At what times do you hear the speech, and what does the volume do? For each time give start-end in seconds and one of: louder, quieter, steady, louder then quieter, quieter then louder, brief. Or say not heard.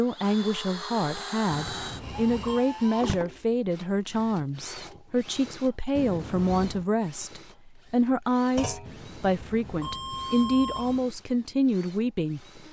0.0-12.6 steady.